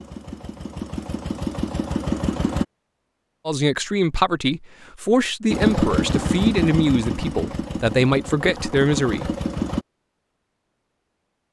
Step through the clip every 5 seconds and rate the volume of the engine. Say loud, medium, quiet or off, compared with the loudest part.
loud, loud, off.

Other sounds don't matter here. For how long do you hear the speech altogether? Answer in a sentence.
You can hear the speech for 6 seconds altogether.